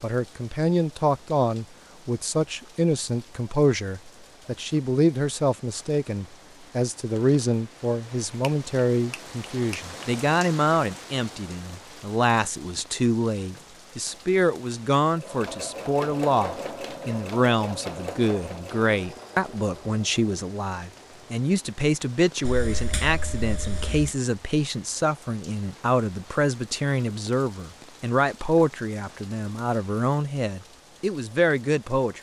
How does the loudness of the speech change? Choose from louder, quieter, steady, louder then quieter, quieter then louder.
steady.